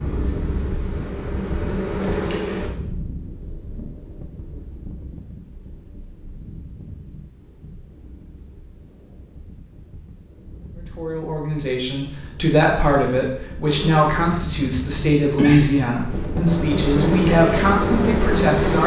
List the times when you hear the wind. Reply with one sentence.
The wind can be heard from 0.0 to 18.8 s.